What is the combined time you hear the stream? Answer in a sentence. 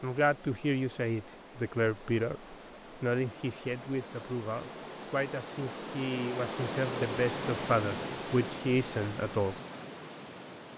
You can hear the stream for 11 seconds altogether.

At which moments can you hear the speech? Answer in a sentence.
The speech can be heard from 0.0 to 9.6 s.